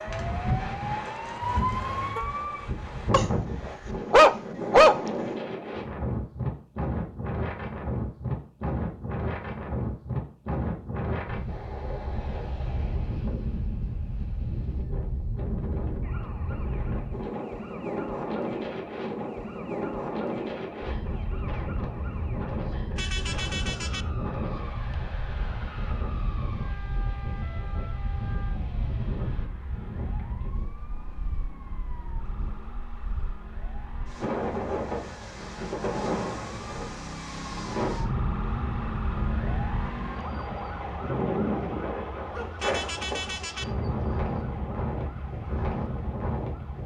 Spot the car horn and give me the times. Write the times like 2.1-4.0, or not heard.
1.4-2.3, 22.9-24.1, 42.5-43.8.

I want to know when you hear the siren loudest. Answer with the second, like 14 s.
2 s.